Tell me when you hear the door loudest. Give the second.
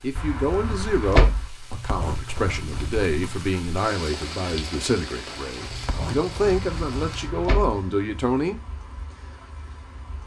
1 s.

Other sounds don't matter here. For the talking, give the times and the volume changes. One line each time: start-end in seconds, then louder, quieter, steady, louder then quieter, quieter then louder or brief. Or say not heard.
0.0-8.6 steady.